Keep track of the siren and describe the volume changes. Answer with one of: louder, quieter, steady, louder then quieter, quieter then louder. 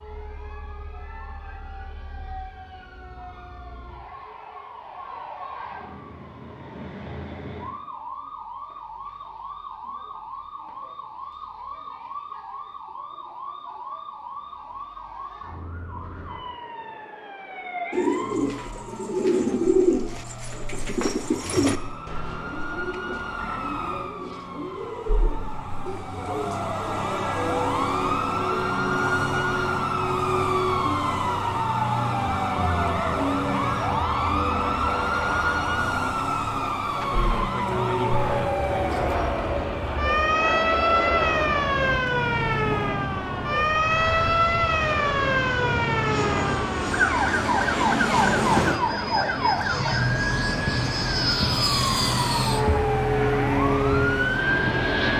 louder.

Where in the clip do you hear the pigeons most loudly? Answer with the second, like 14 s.
20 s.